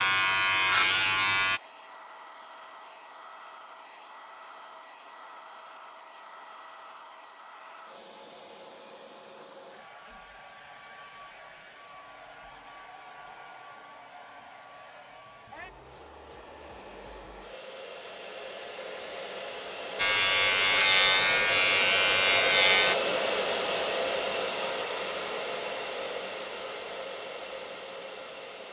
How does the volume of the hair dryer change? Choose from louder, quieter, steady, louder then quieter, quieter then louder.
louder.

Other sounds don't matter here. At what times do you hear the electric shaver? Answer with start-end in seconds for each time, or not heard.
0.0-1.6, 19.9-22.9.